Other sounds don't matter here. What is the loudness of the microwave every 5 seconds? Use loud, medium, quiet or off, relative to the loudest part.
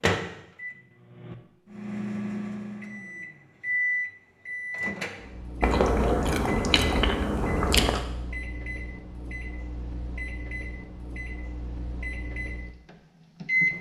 loud, medium, loud.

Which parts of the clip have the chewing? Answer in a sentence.
You can hear the chewing from 5.6 to 8.1 s.